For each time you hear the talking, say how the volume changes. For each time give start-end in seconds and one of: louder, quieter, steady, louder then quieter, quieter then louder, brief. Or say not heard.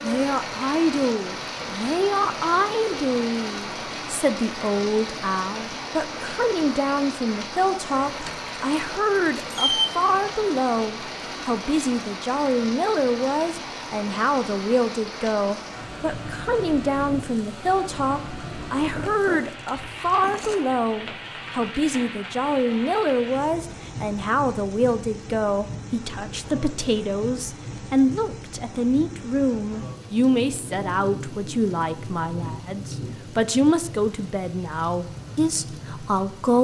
0.0-36.6 steady.